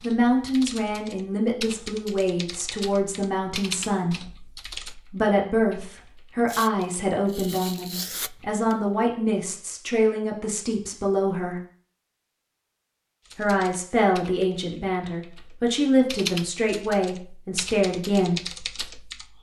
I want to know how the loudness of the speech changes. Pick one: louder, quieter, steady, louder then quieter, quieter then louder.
steady.